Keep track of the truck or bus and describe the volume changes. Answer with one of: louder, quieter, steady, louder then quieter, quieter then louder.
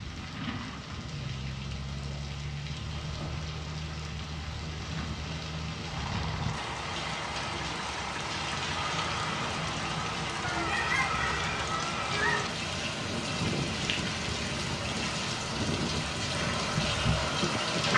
steady.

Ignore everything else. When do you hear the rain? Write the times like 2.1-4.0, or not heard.
0.0-17.9.